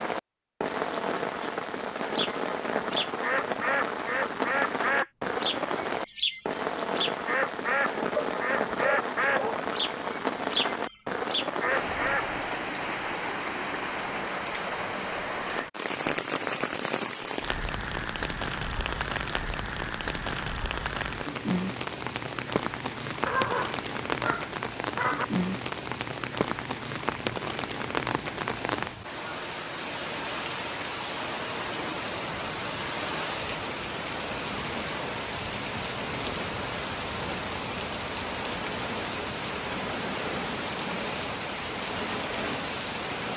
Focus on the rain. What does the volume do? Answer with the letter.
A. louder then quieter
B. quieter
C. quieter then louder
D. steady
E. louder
D.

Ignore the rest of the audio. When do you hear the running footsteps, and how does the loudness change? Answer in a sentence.
The running footsteps can't be heard in this clip.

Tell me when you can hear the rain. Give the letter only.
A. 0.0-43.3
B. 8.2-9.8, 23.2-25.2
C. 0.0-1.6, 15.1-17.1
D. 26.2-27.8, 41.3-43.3
A.